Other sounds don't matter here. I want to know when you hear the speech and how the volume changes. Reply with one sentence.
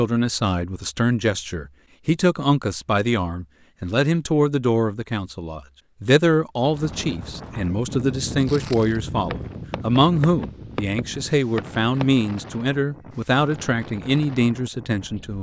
The speech can be heard from 0.0 to 15.3 s, at a steady volume.